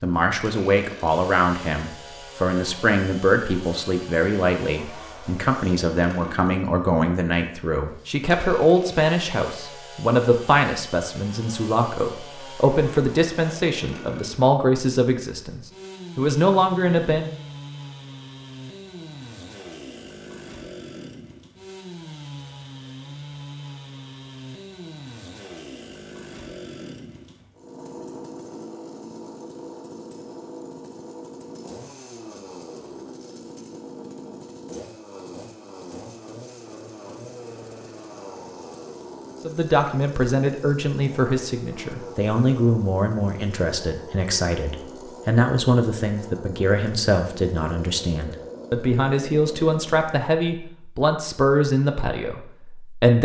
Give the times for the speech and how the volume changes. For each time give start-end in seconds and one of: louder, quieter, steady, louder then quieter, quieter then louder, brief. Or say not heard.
0.0-17.3 steady
39.4-53.2 steady.